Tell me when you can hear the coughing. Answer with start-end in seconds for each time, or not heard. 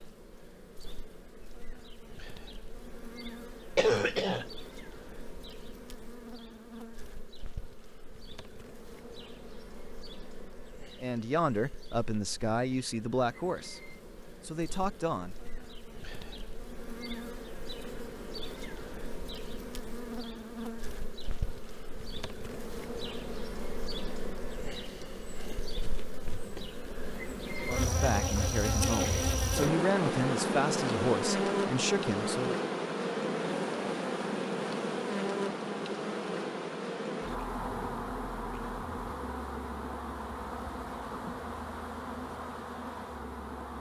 3.8-4.5.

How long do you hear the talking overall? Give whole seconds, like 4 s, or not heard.
9 s.